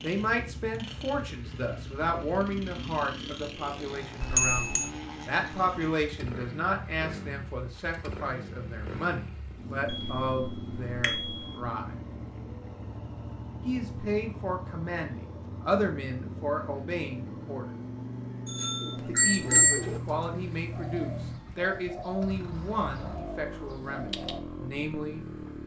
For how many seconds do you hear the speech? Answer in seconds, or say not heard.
22 s.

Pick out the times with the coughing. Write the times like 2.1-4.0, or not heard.
not heard.